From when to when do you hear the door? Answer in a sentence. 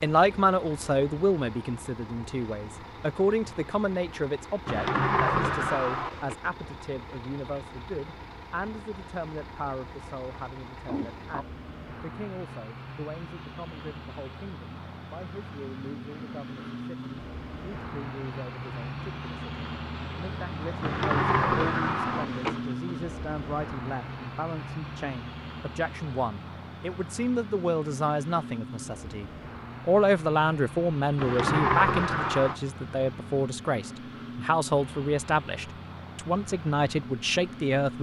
The door can be heard from 4.7 to 6.3 s, from 20.8 to 22.6 s and from 31.1 to 32.6 s.